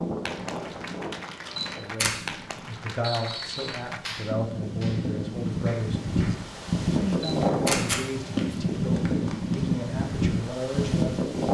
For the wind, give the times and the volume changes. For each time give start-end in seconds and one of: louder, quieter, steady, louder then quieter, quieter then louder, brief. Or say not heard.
0.0-11.4 louder.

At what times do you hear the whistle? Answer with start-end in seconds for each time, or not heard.
3.0-3.9.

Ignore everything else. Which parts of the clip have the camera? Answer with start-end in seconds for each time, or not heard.
1.4-2.1, 7.1-8.7.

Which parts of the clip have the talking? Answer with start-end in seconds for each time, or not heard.
1.7-11.2.